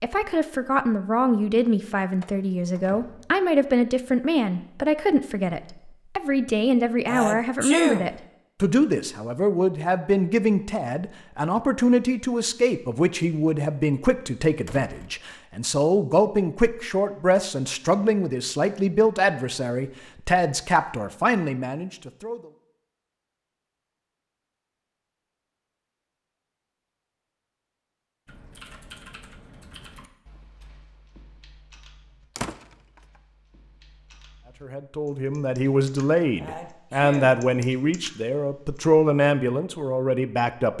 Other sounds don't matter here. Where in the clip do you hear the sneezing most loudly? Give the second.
8 s.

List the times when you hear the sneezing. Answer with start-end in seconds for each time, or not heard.
7.0-8.1, 36.4-37.4.